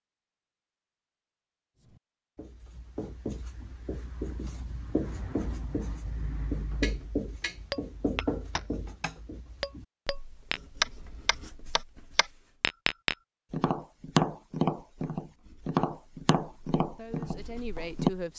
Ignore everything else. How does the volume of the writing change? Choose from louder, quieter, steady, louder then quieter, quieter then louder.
louder then quieter.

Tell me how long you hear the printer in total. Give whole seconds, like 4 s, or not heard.
not heard.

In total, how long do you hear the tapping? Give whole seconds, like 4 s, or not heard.
11 s.